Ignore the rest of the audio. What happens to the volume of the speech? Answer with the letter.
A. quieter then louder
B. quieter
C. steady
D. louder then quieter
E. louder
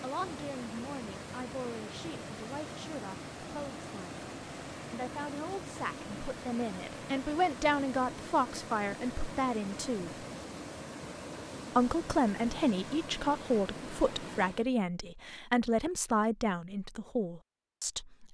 E.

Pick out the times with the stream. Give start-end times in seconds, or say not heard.
0.0-14.7.